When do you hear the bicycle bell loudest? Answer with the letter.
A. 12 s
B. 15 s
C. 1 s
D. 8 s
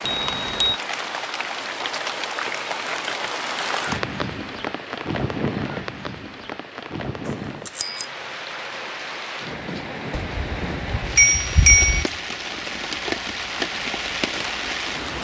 A.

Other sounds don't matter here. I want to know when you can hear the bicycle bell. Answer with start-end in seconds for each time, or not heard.
0.1-0.8, 7.2-8.1, 10.2-12.1.